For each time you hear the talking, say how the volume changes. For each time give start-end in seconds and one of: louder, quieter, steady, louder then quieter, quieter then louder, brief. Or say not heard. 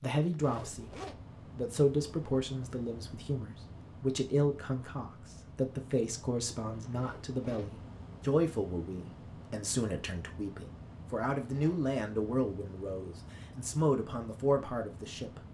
0.0-0.9 brief
1.6-15.4 steady.